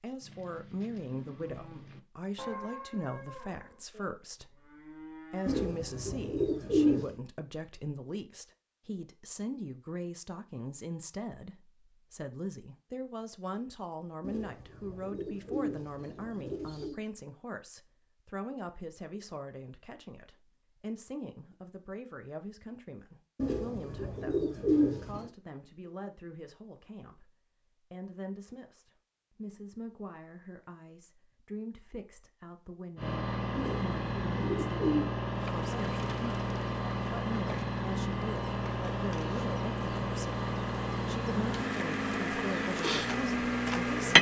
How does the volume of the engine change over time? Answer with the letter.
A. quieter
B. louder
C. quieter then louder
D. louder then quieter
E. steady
E.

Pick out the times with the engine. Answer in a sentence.
The engine can be heard from 33.0 to 44.1 s.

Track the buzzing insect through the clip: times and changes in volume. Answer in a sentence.
The buzzing insect can be heard from 35.3 to 44.1 s, getting louder.